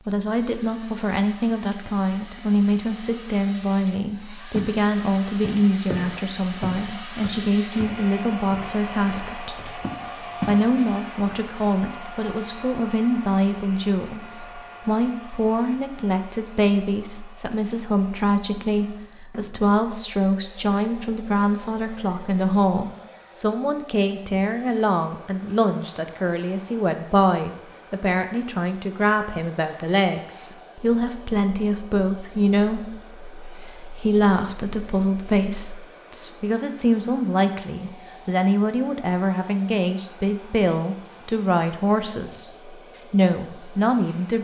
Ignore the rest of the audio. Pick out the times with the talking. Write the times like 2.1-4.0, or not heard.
0.1-9.8, 10.4-44.4.